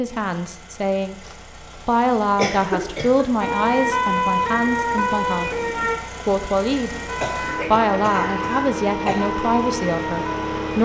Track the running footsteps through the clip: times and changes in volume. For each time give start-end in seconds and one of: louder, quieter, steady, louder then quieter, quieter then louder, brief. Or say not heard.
not heard.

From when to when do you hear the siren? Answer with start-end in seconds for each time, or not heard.
3.4-10.8.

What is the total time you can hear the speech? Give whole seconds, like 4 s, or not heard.
9 s.